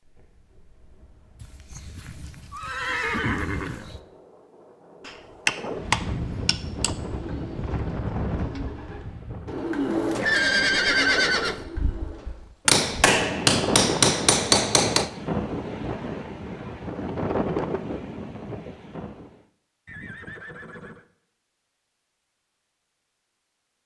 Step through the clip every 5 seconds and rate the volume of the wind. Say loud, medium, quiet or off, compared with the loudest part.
quiet, loud, loud, loud, off.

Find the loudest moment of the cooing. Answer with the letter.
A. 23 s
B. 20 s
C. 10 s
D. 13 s
C.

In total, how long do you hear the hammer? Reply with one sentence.
The hammer can be heard for 4 seconds in total.